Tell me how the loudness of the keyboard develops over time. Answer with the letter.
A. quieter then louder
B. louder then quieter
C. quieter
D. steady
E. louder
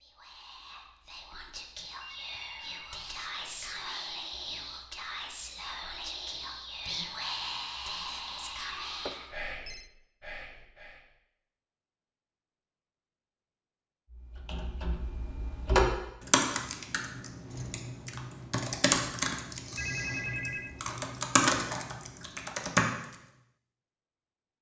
A.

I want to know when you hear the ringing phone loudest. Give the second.
20 s.